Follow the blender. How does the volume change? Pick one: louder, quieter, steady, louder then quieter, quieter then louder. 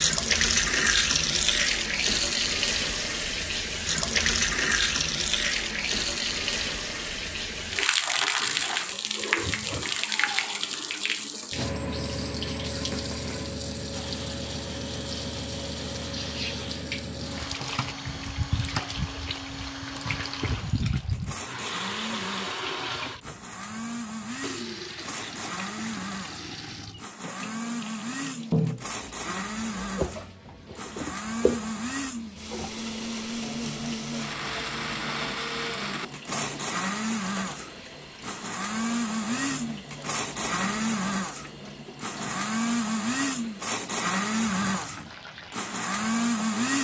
louder.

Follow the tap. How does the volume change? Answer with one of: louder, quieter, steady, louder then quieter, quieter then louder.
quieter.